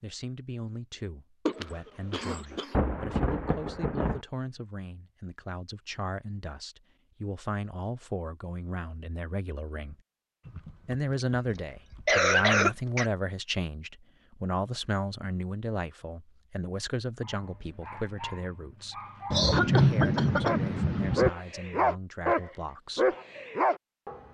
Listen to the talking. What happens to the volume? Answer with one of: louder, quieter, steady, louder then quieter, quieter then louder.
louder then quieter.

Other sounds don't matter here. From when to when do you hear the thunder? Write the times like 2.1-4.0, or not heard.
2.7-4.2, 19.3-21.3.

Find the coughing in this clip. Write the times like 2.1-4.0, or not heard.
1.4-2.8, 10.4-13.1, 19.3-20.6.